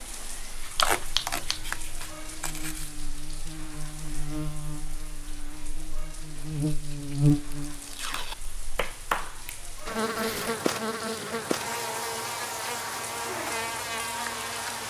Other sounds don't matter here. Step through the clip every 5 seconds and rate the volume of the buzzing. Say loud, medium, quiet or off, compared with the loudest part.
medium, loud, loud.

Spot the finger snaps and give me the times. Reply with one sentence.
The finger snaps can be heard from 0.8 to 2.0 s and from 8.1 to 9.8 s.